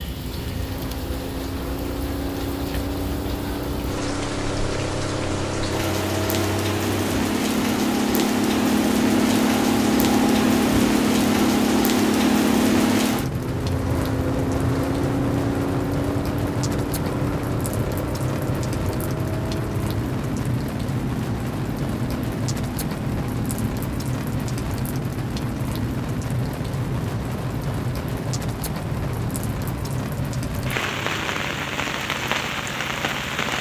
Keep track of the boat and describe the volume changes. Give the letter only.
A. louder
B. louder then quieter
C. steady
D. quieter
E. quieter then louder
B.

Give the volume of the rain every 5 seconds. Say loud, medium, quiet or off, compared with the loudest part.
medium, loud, loud, loud, loud, loud, loud.